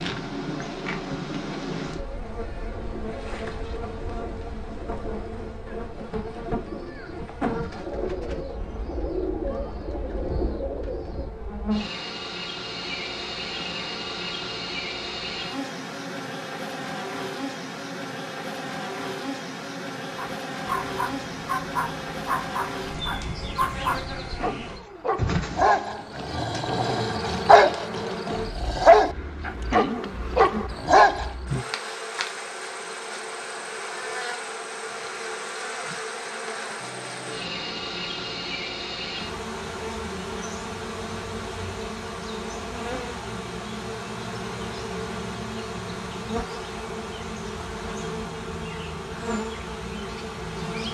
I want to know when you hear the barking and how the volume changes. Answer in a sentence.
The barking can be heard from 20.1 to 31.3 s, getting louder.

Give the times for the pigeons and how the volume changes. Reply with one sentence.
You can hear the pigeons from 1.6 to 11.3 s, getting louder.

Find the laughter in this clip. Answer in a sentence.
The laughter can't be heard in this clip.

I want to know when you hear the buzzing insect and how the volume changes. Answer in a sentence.
The buzzing insect can be heard from 0.0 to 50.8 s, at a steady volume.